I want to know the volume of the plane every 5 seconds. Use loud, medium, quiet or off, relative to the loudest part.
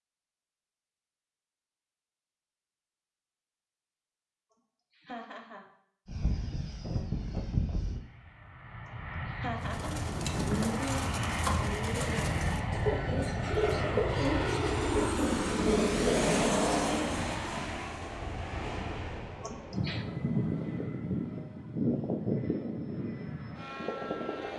off, medium, loud, loud, loud.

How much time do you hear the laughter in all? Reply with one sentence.
The laughter can be heard for 2 seconds in total.